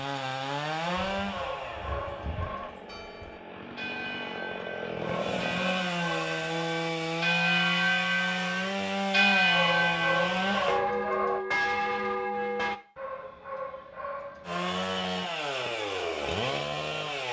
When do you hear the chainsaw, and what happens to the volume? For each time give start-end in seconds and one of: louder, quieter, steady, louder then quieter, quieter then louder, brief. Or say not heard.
0.0-10.8 quieter then louder
14.4-17.2 brief.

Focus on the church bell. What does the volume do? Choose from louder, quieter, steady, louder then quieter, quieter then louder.
louder.